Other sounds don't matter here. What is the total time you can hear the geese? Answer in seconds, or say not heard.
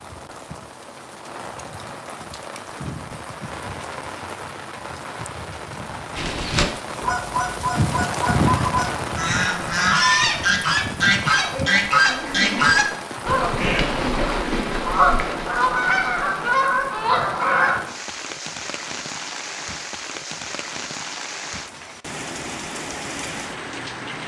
12 s.